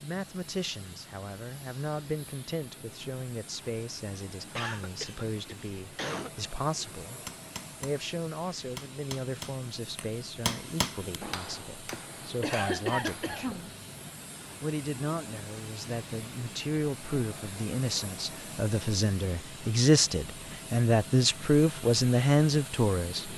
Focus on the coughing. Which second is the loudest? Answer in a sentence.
The loudest moment of the coughing is at 13 seconds.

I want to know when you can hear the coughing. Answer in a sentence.
You can hear the coughing from 4.5 to 6.3 s and from 11.9 to 13.7 s.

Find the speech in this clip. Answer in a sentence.
The speech can be heard from 0.0 to 7.2 s, from 7.8 to 13.7 s and from 14.6 to 23.3 s.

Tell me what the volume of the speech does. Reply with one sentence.
The volume of the speech goes up.